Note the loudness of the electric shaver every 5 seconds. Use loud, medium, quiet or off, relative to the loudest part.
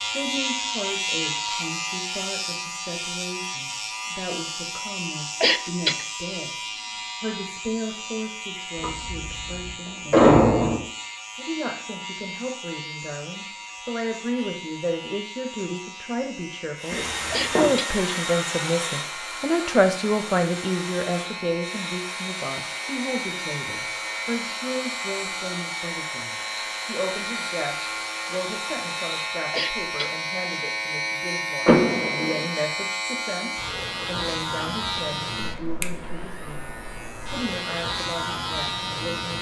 loud, medium, medium, medium, medium, loud, loud, loud.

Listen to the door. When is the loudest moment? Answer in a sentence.
The volume of the door peaks at 10 seconds.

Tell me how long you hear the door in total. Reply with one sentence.
The door can be heard for 4 seconds in total.